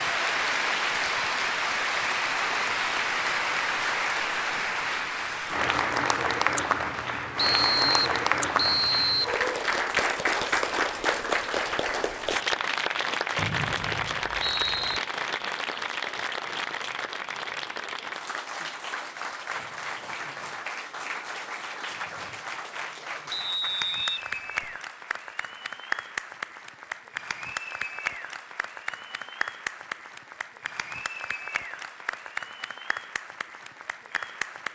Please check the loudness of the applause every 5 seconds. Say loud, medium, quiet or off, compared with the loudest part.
loud, loud, loud, medium, medium, medium, medium.